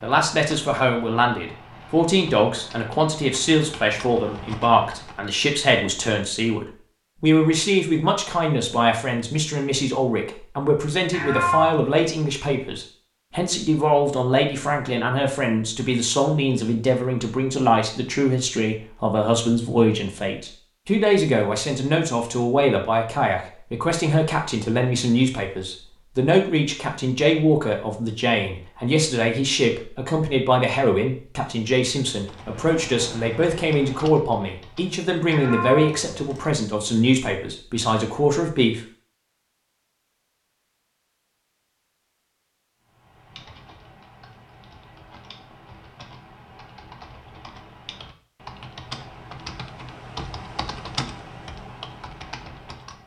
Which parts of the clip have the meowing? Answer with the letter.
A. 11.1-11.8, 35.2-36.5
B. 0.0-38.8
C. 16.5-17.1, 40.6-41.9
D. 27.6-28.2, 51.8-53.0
A.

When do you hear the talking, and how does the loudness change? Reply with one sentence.
The talking can be heard from 0.0 to 38.8 s, at a steady volume.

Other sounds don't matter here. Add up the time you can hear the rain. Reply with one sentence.
The rain can't be heard in this clip.